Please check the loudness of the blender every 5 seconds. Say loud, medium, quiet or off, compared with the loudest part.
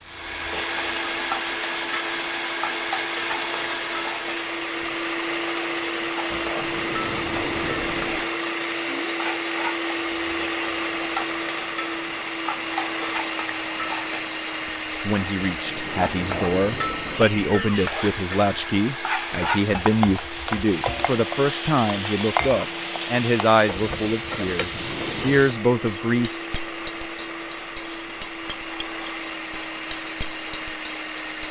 loud, loud, loud, medium, medium, medium, medium.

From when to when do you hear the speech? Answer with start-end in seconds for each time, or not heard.
14.8-26.3.